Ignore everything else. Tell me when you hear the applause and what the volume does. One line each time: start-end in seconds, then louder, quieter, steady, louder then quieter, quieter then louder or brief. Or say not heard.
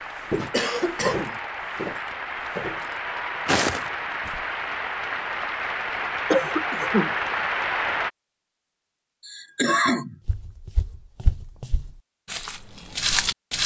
0.0-8.1 louder.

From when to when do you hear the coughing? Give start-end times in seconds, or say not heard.
0.5-1.4, 6.3-7.2, 9.2-10.2.